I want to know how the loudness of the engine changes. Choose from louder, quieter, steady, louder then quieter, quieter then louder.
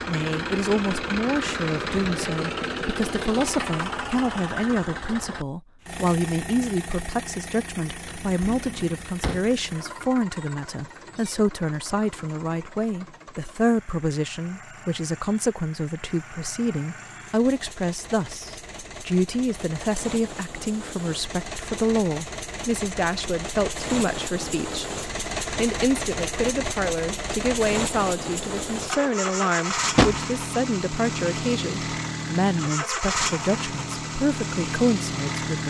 quieter then louder.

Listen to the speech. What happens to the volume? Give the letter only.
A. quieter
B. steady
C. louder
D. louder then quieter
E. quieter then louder
B.